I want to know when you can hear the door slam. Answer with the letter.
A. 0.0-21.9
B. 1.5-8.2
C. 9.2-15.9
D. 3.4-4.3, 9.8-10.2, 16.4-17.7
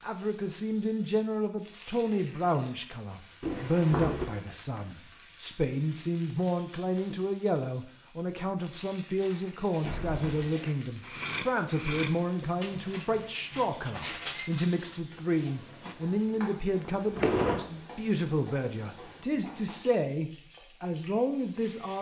D.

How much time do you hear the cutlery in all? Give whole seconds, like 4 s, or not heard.
7 s.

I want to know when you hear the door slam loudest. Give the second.
17 s.